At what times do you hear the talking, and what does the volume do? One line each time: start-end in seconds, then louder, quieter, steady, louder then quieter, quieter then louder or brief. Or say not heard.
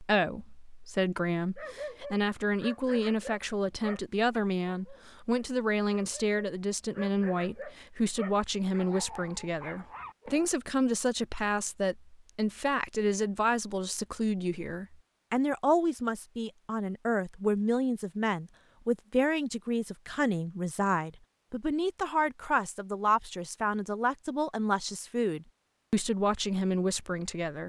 0.0-27.6 steady.